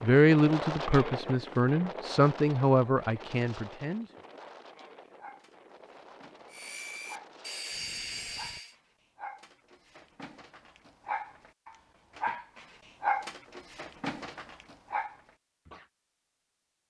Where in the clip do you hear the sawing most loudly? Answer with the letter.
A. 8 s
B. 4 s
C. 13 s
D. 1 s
A.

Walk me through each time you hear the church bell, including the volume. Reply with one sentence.
You can't hear the church bell here.